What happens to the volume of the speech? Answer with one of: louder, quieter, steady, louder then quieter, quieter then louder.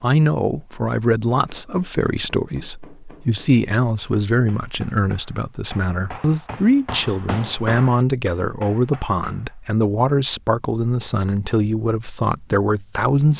steady.